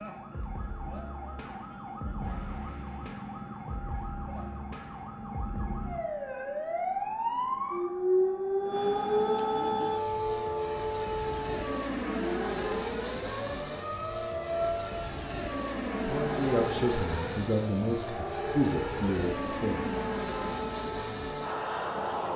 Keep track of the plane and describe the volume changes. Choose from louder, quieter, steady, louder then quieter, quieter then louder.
louder.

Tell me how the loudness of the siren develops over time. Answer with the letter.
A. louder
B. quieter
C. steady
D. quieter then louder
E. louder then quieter
E.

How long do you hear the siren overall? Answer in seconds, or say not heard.
22 s.